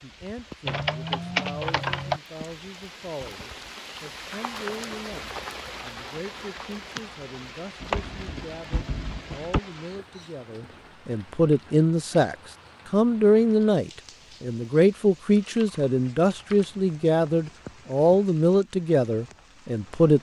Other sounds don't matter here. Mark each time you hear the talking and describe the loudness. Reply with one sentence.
You can hear the talking from 0.0 to 20.1 s, getting louder.